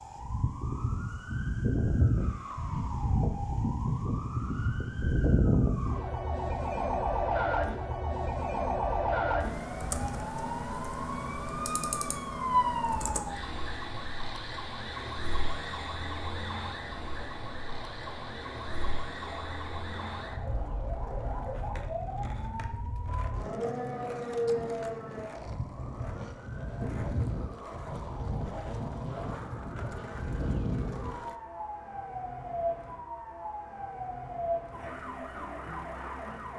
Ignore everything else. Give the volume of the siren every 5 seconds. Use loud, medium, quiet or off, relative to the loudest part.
loud, loud, loud, medium, medium, medium, medium, medium.